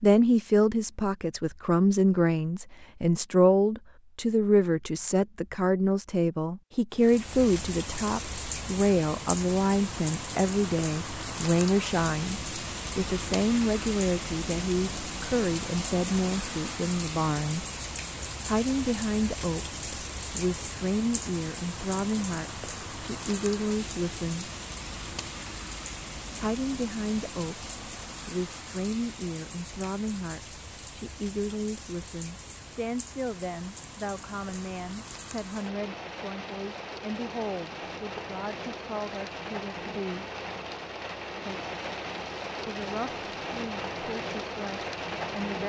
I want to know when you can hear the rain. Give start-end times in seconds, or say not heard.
7.0-45.6.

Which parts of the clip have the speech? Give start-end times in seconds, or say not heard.
0.0-17.6, 18.4-24.5, 26.4-40.2, 42.6-45.6.